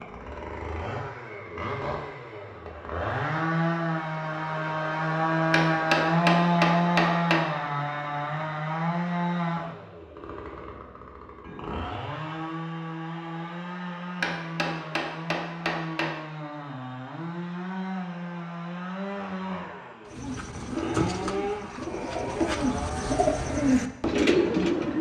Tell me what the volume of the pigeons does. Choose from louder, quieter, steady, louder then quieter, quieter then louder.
quieter then louder.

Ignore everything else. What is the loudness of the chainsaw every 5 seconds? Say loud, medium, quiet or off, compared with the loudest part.
medium, loud, medium, medium, medium.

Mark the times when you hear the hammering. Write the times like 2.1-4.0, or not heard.
5.5-7.4, 14.2-16.1.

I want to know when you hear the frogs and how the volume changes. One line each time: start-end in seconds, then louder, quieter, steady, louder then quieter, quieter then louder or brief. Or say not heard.
not heard.